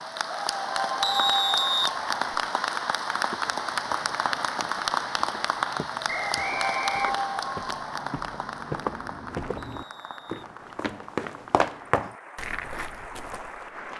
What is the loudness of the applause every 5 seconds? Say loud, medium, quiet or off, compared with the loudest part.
loud, loud, quiet.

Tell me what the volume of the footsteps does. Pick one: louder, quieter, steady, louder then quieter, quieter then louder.
louder.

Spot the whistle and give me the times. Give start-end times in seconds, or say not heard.
1.0-2.4, 6.0-7.2, 9.6-10.4.